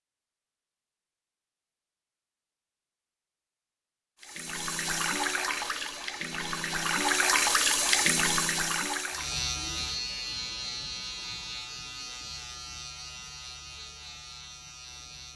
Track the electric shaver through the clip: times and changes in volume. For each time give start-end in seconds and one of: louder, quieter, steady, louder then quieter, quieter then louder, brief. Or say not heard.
9.1-15.3 quieter.